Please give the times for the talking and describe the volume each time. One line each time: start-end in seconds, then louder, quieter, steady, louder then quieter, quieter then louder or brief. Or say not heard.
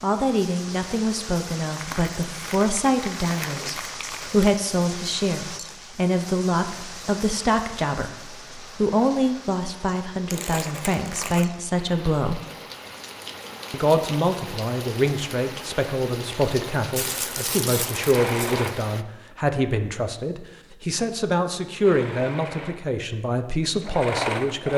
0.0-12.4 steady
13.7-24.7 steady.